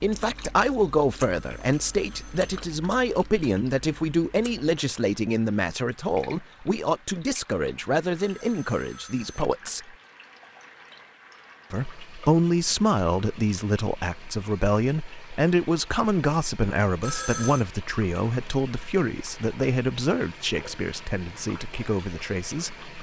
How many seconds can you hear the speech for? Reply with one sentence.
You can hear the speech for 21 seconds altogether.